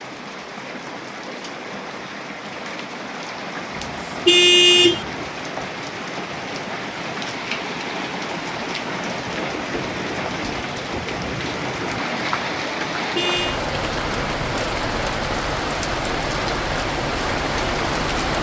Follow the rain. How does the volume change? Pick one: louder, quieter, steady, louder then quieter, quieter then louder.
louder.